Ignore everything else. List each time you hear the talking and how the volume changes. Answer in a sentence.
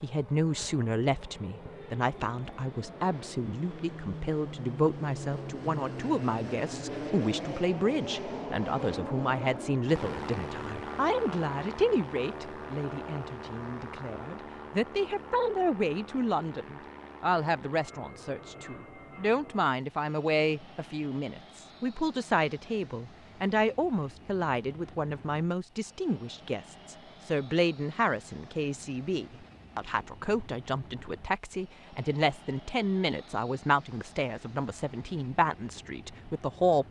You can hear the talking from 0.0 to 36.8 s, at a steady volume.